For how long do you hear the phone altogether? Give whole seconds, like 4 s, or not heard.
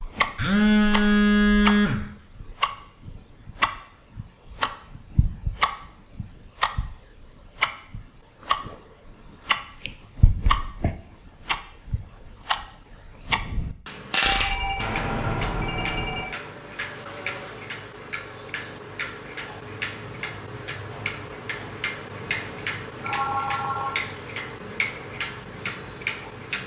5 s.